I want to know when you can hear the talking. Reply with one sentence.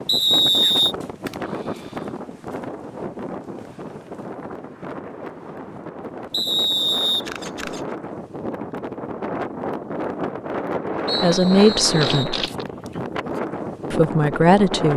You can hear the talking from 11.2 to 12.4 s and from 13.9 to 14.9 s.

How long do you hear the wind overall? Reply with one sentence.
You can hear the wind for 15 seconds altogether.